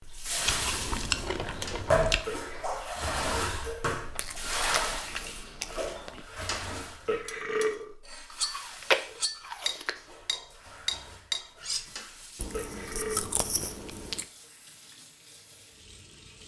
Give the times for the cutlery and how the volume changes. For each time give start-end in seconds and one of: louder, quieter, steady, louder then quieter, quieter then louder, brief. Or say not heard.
6.4-11.8 louder.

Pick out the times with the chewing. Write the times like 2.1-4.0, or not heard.
0.5-2.2, 4.2-6.2, 8.3-9.9, 12.3-14.2.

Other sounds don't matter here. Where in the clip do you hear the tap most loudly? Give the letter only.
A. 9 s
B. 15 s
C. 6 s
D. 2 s
D.